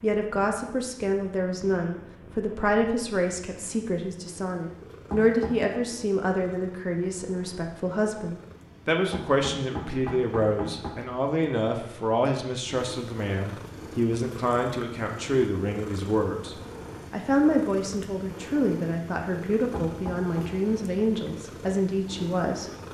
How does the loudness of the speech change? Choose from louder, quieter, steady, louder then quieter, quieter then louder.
steady.